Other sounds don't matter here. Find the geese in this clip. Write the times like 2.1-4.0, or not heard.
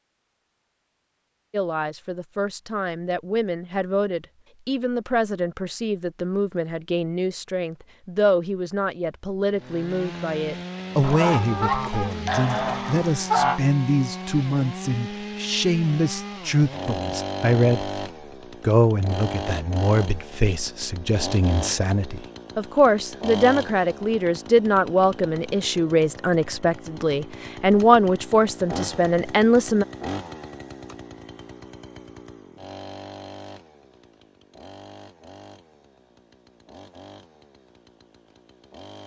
11.0-13.6.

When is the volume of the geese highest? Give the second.
13 s.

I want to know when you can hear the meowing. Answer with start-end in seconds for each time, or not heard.
not heard.